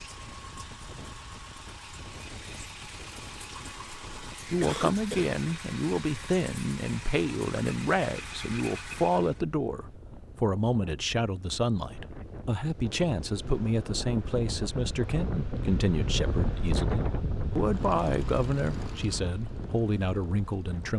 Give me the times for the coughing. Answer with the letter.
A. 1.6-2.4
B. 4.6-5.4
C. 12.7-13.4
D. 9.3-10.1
B.